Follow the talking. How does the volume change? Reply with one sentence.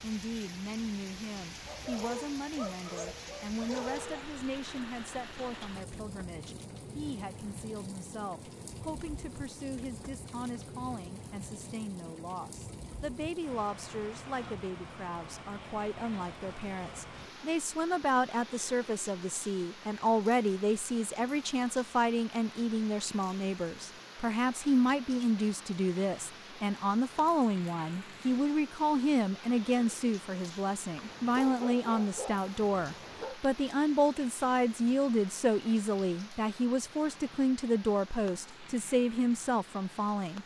The volume of the talking goes up.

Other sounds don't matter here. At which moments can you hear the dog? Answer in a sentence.
The dog can be heard from 1.6 to 4.2 s and from 30.9 to 33.4 s.